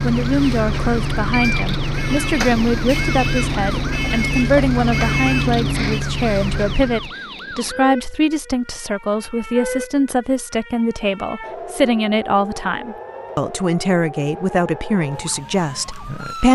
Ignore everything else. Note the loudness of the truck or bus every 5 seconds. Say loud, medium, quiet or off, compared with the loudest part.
loud, loud, off, off.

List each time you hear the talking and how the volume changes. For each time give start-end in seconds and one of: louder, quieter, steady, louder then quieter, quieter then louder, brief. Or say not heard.
0.0-16.4 steady.